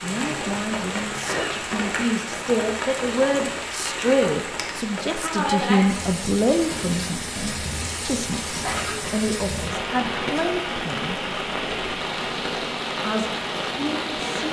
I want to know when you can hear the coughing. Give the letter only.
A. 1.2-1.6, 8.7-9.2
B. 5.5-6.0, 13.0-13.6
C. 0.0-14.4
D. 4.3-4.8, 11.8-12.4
A.